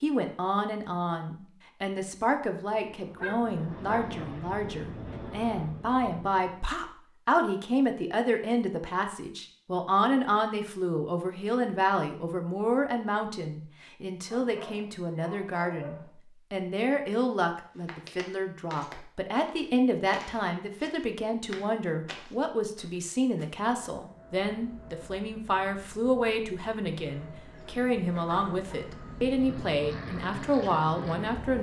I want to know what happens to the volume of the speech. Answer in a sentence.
The loudness of the speech stays about the same.